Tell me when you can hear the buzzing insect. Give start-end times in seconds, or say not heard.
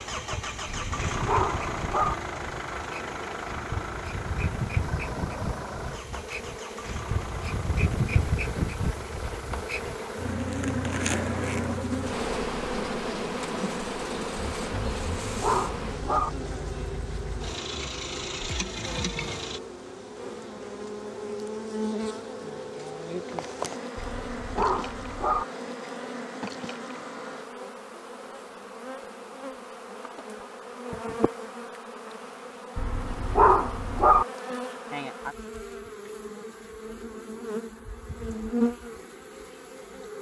0.0-40.1.